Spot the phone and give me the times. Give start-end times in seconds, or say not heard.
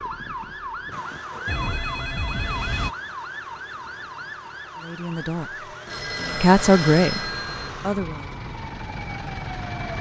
1.4-3.0, 5.8-7.7.